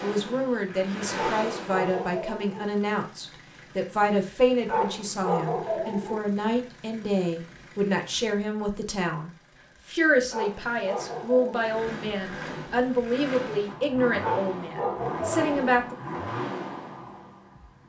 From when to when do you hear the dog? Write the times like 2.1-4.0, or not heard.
1.1-2.6, 4.7-6.2, 10.3-11.8, 14.2-15.8.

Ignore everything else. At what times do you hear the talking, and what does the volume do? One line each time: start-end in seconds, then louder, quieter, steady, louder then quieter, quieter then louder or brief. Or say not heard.
0.0-15.9 steady.